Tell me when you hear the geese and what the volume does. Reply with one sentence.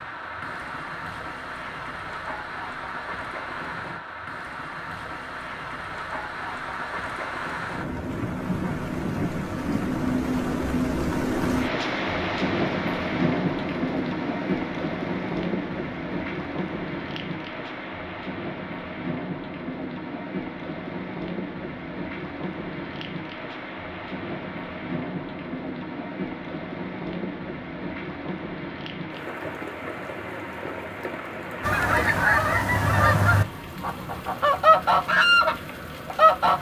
The geese can be heard from 31.6 to 36.5 s, getting quieter then louder.